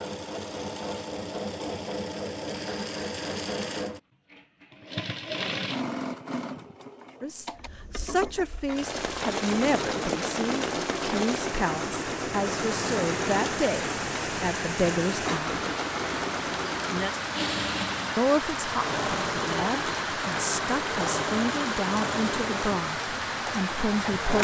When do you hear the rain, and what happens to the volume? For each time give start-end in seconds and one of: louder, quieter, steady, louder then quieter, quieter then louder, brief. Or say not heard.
8.7-24.3 steady.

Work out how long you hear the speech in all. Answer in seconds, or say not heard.
15 s.